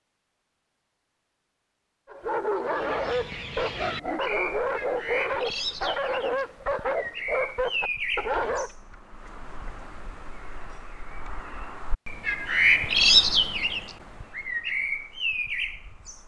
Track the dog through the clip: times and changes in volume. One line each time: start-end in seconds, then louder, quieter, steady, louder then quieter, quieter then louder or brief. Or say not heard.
2.0-8.7 steady.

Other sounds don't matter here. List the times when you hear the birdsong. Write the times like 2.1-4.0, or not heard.
2.6-16.2.